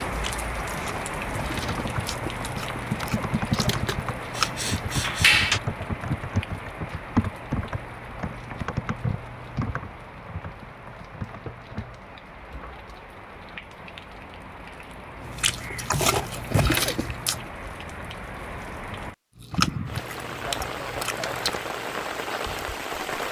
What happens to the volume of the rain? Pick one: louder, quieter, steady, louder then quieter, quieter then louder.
quieter then louder.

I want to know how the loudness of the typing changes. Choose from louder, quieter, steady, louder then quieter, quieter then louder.
quieter.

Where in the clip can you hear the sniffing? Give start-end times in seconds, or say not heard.
4.3-5.6.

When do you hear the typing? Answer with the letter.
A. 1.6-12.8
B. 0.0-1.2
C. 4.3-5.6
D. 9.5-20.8
A.